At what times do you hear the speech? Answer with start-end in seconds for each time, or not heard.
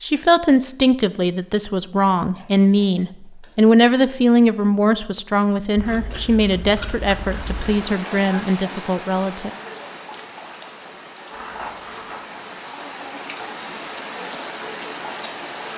0.0-9.5.